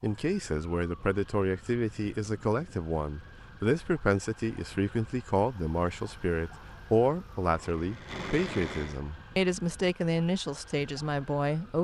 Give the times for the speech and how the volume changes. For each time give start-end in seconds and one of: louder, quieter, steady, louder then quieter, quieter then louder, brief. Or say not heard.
0.0-11.7 steady.